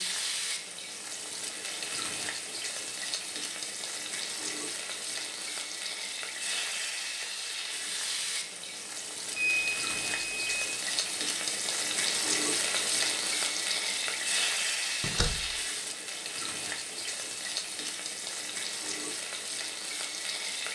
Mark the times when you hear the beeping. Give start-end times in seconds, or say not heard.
9.3-10.7.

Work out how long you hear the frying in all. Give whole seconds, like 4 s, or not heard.
21 s.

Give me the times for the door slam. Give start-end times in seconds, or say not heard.
15.0-15.6.